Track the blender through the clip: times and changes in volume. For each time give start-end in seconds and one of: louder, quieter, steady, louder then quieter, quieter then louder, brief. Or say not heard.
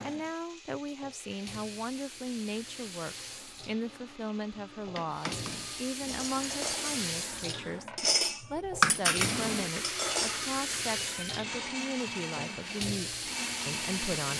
0.0-14.3 louder.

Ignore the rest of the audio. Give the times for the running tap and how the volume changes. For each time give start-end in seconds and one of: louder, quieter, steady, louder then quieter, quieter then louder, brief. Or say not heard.
0.0-14.3 louder.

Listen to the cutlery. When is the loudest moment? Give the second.
9 s.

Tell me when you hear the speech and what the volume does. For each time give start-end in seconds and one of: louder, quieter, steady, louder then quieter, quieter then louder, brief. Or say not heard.
0.0-14.3 steady.